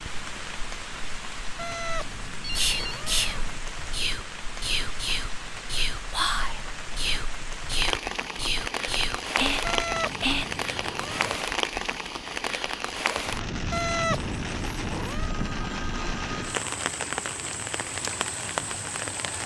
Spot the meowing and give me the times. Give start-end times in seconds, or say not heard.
1.6-3.6, 9.6-11.4, 13.7-15.3.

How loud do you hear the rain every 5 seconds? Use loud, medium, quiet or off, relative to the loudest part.
medium, loud, loud, loud.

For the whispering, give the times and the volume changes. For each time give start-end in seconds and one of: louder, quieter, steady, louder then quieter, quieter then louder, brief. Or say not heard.
2.5-10.4 steady.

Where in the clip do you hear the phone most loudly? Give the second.
3 s.